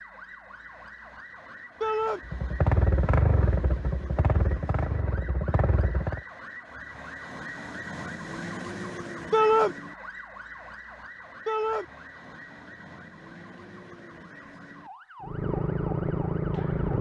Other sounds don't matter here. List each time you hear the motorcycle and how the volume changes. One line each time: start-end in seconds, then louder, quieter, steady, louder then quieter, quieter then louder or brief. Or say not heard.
2.2-6.2 quieter
15.2-16.9 brief.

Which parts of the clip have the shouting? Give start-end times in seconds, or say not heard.
1.8-2.2, 9.3-9.8, 11.4-11.8.